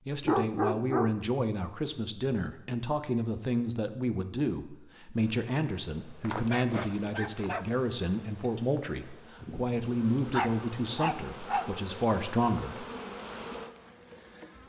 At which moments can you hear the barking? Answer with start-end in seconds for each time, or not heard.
0.2-1.1, 6.2-7.8, 10.3-11.7.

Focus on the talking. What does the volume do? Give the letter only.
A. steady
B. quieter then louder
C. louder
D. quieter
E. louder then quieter
A.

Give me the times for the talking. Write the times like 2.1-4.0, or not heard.
0.1-12.8.